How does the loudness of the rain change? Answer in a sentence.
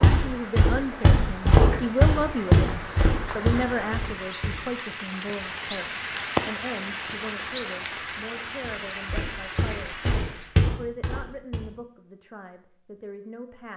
The loudness of the rain goes up, then down.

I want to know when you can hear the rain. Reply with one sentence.
You can hear the rain from 0.0 to 10.6 s.